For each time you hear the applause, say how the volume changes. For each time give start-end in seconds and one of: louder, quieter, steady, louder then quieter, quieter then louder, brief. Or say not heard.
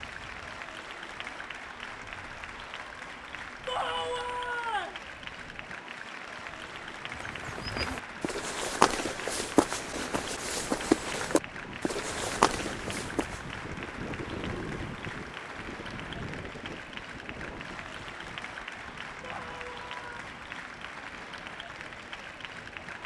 0.0-23.0 steady.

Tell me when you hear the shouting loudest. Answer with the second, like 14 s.
4 s.